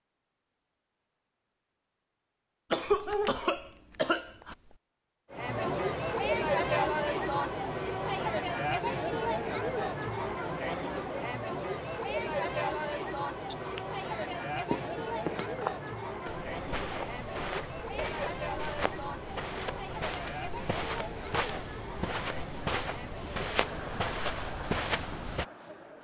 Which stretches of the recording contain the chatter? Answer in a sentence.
You can hear the chatter from 5.3 to 25.9 s.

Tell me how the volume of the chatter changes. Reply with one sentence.
The volume of the chatter goes down.